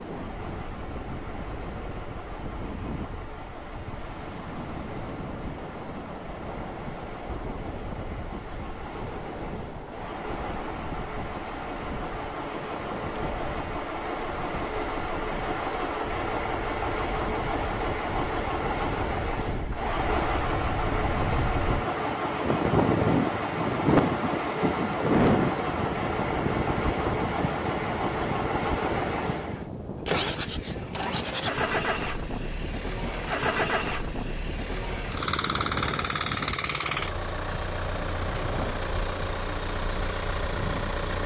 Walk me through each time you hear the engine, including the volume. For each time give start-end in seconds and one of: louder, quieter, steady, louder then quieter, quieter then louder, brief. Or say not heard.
0.0-41.2 louder.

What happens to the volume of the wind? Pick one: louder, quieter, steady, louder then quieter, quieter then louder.
louder then quieter.